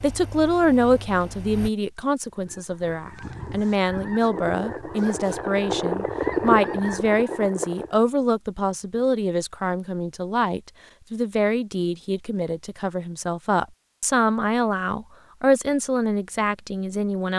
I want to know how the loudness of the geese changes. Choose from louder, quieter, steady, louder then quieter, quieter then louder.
louder then quieter.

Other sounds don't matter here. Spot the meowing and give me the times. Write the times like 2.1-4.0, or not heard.
not heard.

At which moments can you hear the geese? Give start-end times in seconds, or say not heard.
2.4-8.0.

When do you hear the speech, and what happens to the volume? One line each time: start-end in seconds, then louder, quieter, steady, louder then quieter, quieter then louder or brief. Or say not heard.
0.0-17.3 steady.